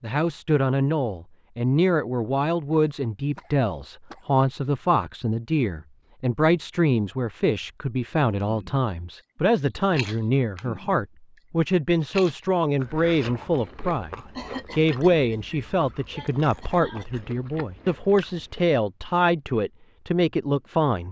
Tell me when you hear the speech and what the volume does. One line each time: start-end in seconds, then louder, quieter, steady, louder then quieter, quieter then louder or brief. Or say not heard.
0.0-21.0 steady.